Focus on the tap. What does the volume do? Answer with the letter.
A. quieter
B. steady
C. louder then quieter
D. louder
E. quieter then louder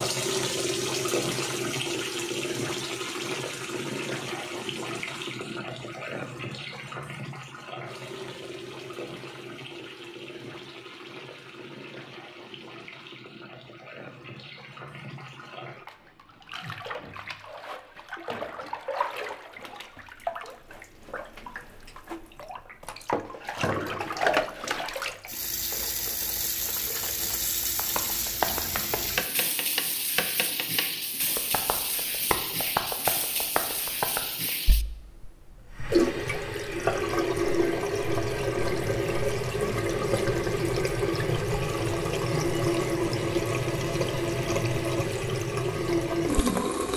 E.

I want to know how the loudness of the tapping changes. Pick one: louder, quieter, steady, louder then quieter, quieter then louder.
quieter then louder.